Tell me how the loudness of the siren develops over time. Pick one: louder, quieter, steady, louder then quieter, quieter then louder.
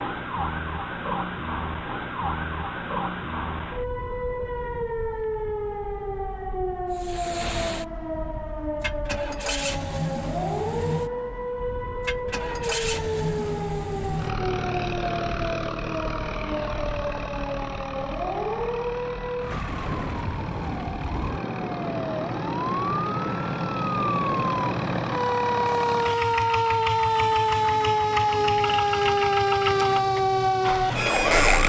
louder.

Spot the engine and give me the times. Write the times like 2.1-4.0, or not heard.
6.9-31.4.